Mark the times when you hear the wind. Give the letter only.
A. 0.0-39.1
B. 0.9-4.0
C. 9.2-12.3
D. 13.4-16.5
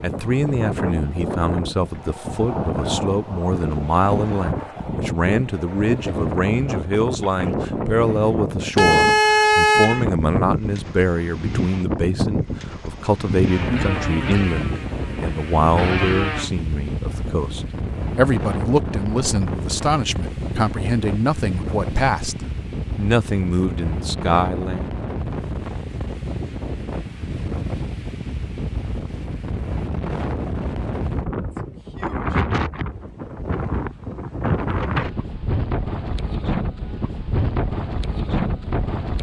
A.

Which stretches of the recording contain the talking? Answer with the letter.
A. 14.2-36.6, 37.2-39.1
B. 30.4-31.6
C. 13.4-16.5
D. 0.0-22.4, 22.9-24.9
D.